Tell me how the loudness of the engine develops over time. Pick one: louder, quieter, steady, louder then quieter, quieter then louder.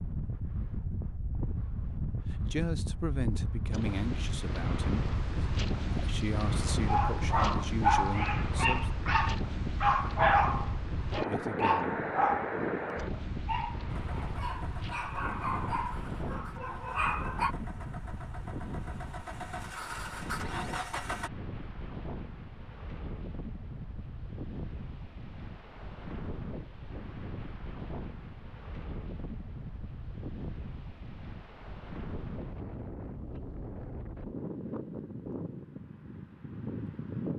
louder.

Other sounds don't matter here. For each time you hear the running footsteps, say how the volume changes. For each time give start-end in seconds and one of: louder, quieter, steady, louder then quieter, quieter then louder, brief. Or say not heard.
not heard.